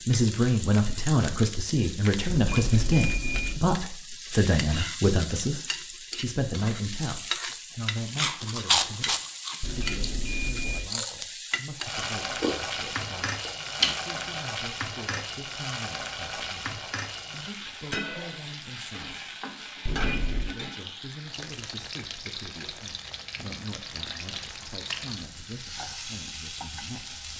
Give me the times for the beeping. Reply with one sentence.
You can hear the beeping from 2.2 to 3.6 s, from 9.6 to 10.8 s and from 19.9 to 20.5 s.